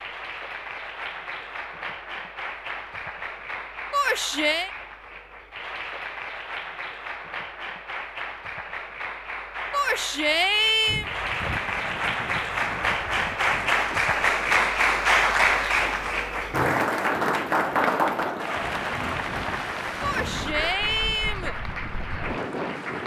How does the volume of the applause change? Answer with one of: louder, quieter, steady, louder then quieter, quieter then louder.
louder then quieter.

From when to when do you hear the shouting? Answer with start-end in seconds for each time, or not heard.
3.9-4.7, 9.7-11.1, 20.0-21.6.